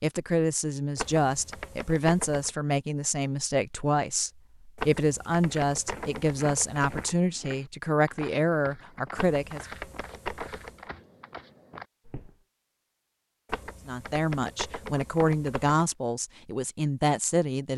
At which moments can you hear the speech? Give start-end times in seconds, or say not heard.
0.0-9.7, 13.8-17.7.